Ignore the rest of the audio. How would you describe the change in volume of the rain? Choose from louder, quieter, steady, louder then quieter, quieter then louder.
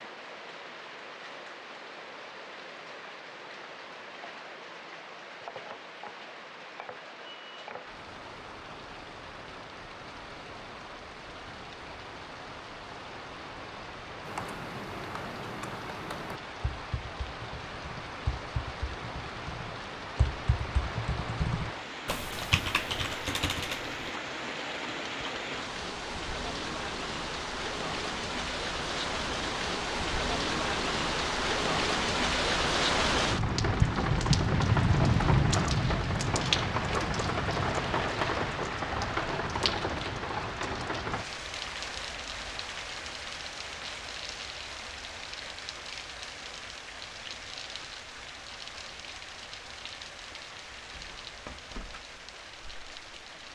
louder then quieter.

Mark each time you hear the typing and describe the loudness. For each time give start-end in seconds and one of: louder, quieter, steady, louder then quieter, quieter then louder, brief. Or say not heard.
14.2-24.1 quieter then louder.